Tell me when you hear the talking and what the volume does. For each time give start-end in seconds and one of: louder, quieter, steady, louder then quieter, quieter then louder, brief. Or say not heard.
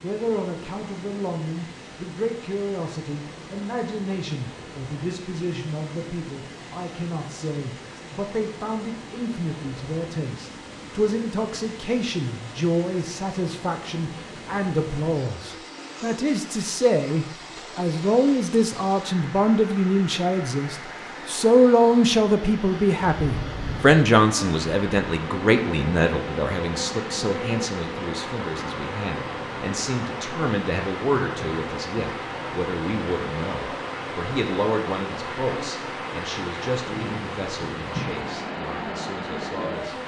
0.0-40.0 louder then quieter.